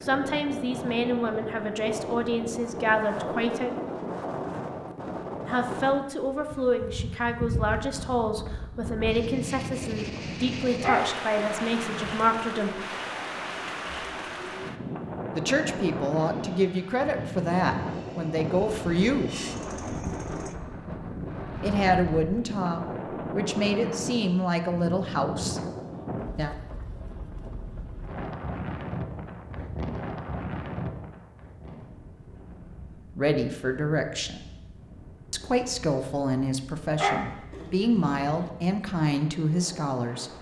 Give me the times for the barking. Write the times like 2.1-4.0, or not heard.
10.8-12.3, 37.0-38.5.